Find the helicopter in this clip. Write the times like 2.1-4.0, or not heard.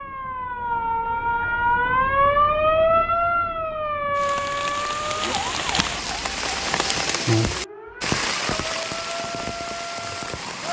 not heard.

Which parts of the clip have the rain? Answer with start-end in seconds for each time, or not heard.
4.2-10.6.